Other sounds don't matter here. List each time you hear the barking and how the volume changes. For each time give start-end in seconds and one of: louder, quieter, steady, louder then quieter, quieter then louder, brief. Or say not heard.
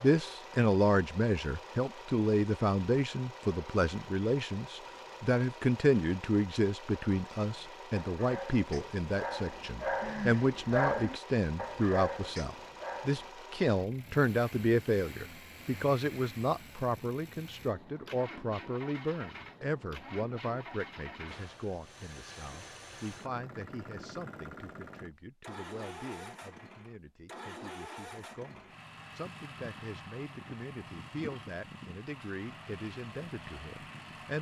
7.5-13.3 louder then quieter.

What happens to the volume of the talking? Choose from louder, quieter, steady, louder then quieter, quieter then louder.
quieter.